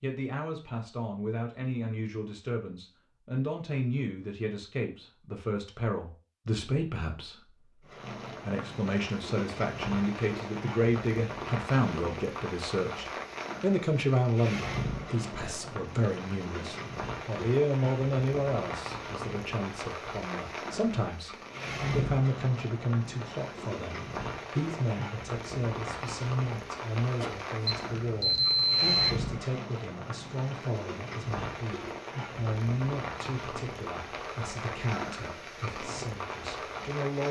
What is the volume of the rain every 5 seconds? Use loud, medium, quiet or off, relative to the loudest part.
off, loud, loud, loud, loud, loud, loud, loud.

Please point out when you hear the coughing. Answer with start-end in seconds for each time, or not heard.
27.2-27.7.